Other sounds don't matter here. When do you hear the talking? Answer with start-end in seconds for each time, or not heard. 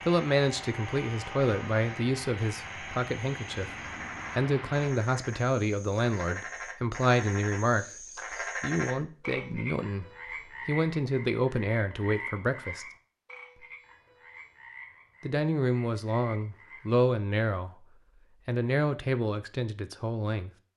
0.1-12.8, 15.2-20.5.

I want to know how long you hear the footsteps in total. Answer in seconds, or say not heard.
not heard.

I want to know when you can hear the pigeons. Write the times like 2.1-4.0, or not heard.
not heard.